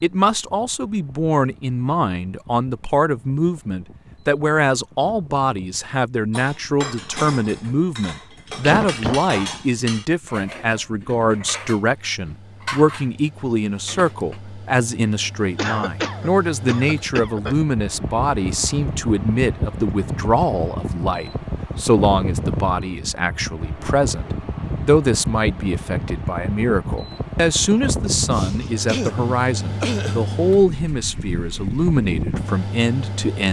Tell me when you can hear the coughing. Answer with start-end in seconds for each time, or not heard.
8.6-9.3, 15.6-17.6, 28.3-30.2.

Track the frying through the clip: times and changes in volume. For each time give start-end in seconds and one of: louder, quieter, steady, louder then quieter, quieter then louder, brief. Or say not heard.
not heard.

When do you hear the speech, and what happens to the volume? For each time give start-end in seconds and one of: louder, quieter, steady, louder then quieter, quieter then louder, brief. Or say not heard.
0.0-33.4 steady.